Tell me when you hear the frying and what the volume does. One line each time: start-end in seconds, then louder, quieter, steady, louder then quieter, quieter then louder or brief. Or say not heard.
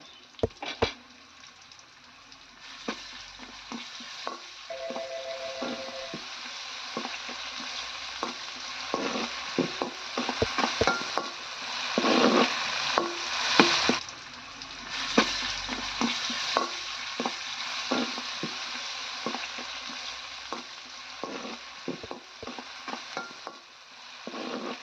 0.0-24.7 louder then quieter.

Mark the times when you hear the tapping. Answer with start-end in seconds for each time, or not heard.
0.4-0.9, 10.4-10.9, 22.0-22.5.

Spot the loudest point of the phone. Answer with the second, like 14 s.
5 s.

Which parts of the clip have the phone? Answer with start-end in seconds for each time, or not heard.
4.7-6.2.